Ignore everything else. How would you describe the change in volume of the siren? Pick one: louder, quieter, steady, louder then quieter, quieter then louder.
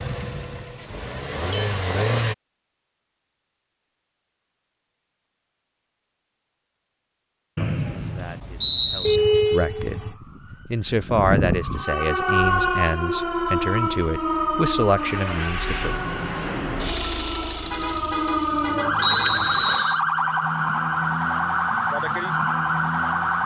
quieter then louder.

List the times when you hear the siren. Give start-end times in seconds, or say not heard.
9.8-23.4.